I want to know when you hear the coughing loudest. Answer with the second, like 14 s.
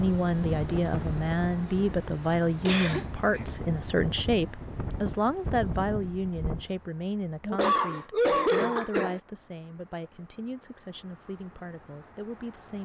8 s.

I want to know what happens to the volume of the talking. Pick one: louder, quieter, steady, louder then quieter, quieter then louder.
quieter.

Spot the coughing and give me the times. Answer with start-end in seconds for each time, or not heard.
2.6-3.5, 7.4-9.2.